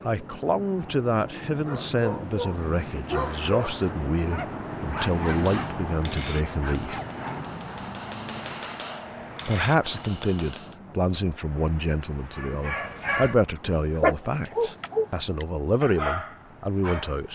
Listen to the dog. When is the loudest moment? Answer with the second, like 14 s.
14 s.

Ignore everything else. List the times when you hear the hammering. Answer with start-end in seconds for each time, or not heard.
5.2-10.8.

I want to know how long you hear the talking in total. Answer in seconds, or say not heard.
15 s.